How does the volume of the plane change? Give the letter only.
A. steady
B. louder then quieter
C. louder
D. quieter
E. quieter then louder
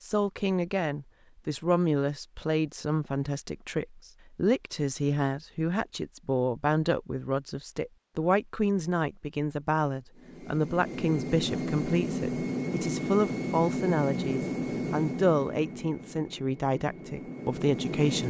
D.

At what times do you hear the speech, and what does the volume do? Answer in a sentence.
You can hear the speech from 0.0 to 18.2 s, at a steady volume.